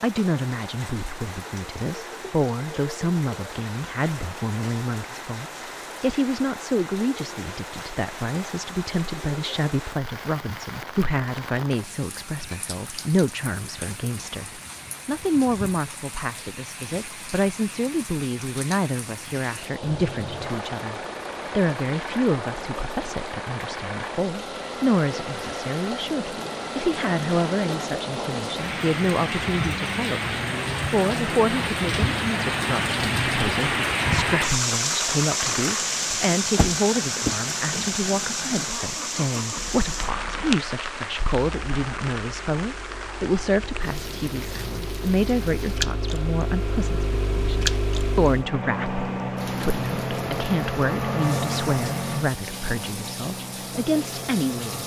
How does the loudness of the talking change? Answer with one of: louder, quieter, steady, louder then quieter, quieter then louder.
steady.